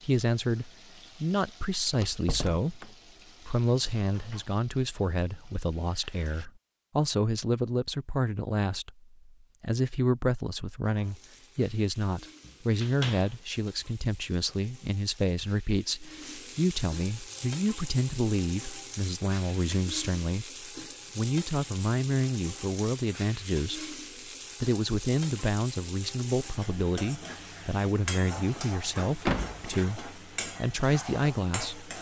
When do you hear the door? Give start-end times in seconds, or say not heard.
1.9-2.9, 12.4-13.3, 29.2-29.6.